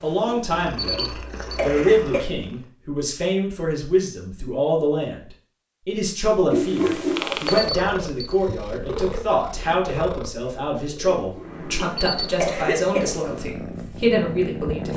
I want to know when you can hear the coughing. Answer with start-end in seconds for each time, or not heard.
0.2-2.2, 6.5-7.2, 11.2-13.1.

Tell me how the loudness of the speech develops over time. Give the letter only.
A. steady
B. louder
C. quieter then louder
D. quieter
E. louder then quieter
A.